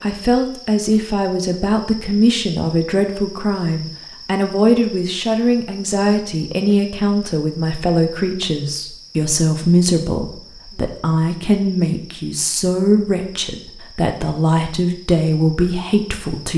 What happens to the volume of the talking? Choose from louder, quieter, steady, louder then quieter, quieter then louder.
steady.